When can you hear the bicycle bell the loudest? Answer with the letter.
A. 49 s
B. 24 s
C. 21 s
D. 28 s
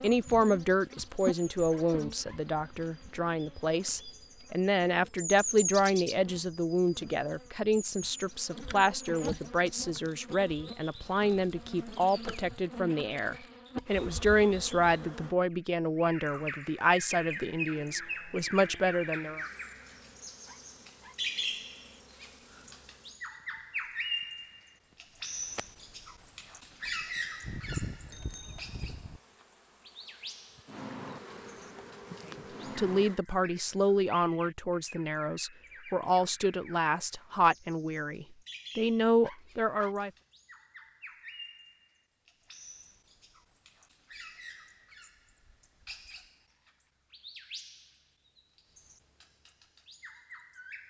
D.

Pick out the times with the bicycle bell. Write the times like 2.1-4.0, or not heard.
27.4-29.2.